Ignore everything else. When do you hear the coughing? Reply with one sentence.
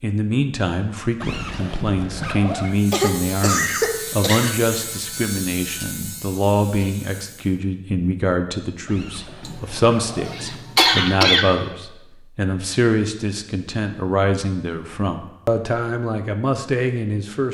The coughing can be heard from 2.9 to 4.7 s and from 9.4 to 11.5 s.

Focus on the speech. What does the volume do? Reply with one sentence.
The loudness of the speech stays about the same.